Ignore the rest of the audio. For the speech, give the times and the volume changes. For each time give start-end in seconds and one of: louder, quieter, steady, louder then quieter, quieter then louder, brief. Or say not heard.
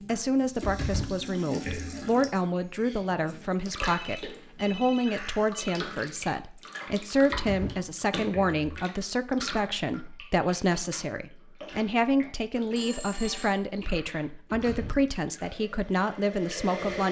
0.1-17.0 steady.